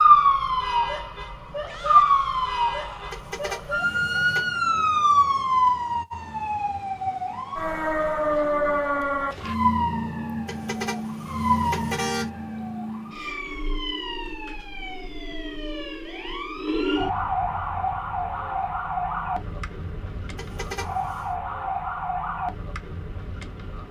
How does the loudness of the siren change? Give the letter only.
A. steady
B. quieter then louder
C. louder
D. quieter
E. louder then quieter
D.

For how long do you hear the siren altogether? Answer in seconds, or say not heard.
24 s.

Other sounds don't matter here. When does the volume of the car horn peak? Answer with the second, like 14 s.
12 s.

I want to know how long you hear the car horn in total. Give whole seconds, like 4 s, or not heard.
4 s.